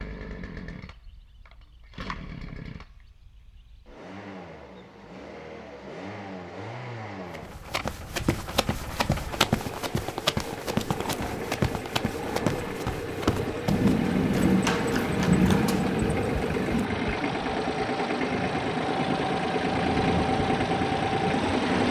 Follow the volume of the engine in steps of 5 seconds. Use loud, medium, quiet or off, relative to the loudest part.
quiet, quiet, medium, loud, loud.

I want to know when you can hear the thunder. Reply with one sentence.
You can hear the thunder from 13.7 to 16.9 s.